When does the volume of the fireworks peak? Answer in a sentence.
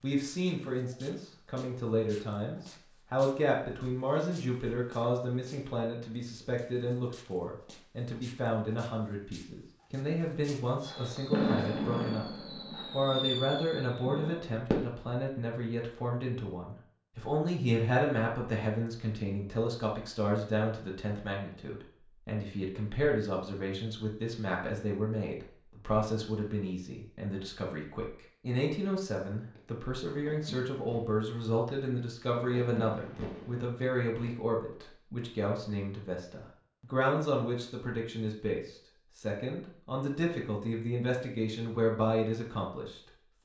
The volume of the fireworks peaks at 11 seconds.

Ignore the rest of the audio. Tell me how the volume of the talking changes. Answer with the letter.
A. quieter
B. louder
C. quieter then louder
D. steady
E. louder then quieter
D.